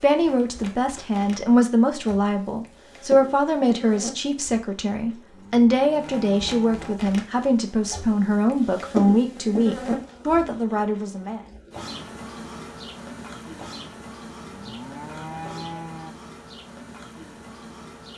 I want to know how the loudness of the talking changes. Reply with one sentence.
The volume of the talking stays about the same.